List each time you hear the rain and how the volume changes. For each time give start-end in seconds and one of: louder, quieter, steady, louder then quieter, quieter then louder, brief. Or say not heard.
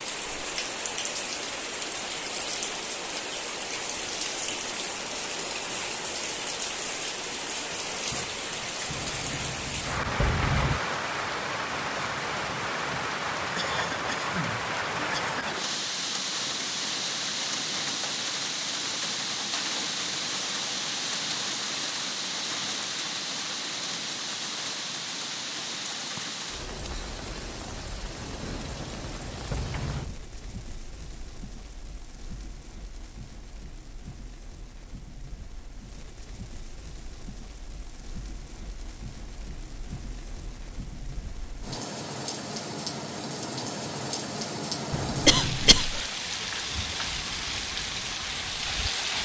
0.0-49.2 quieter then louder.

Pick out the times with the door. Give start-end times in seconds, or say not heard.
8.8-10.8, 28.2-30.1, 44.9-45.9.